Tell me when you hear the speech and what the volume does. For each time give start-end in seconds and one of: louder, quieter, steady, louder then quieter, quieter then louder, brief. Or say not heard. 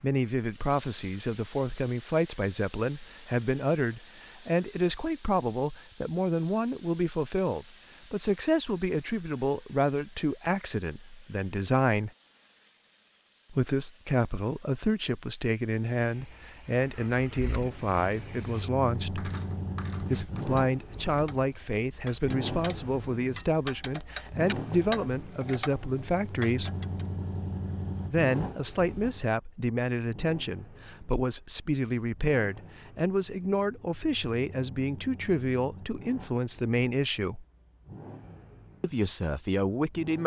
0.0-12.1 steady
13.5-19.3 steady
20.0-26.7 steady
28.1-37.5 steady
38.8-40.2 brief.